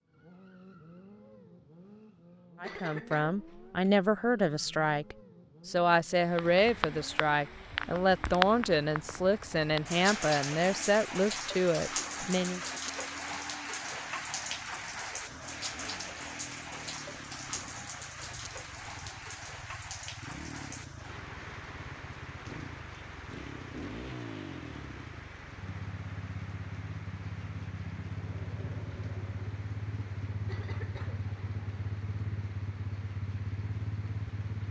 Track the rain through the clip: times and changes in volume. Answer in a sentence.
You can hear the rain from 6.2 to 34.6 s, getting quieter.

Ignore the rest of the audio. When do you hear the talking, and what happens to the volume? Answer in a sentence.
The talking can be heard from 2.6 to 12.6 s, at a steady volume.